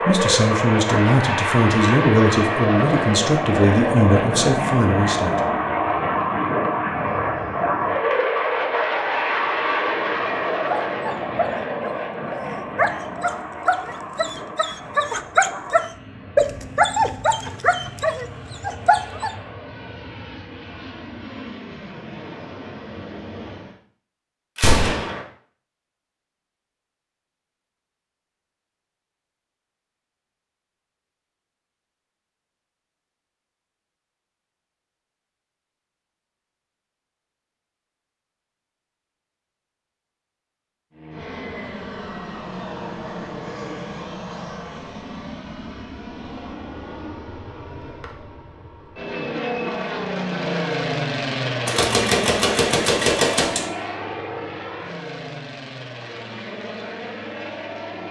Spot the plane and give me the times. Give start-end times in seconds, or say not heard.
0.0-23.8, 40.9-58.0.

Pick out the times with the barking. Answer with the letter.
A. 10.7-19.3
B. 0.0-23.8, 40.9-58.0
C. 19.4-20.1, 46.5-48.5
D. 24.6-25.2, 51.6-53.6
A.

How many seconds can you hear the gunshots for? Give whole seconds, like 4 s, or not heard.
3 s.